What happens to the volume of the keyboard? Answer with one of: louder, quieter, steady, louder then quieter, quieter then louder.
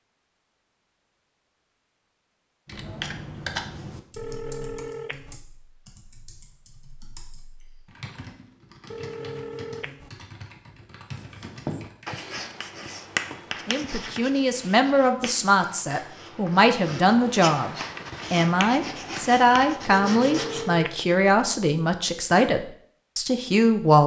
quieter then louder.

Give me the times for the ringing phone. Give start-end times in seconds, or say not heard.
4.2-5.3, 8.9-10.1, 19.9-20.9.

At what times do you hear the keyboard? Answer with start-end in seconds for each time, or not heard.
2.6-12.1.